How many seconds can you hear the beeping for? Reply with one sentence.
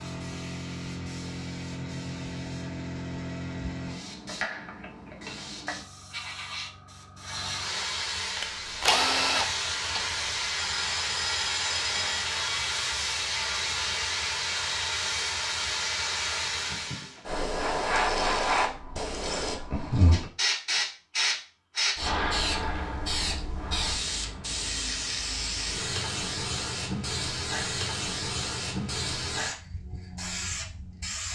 You can hear the beeping for 2 seconds altogether.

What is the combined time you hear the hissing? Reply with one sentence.
The hissing can be heard for 31 seconds in total.